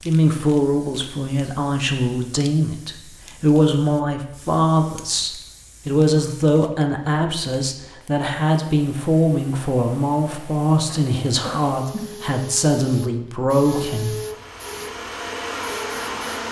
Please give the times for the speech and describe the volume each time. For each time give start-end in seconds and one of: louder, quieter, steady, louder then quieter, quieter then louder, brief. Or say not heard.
0.1-14.2 steady.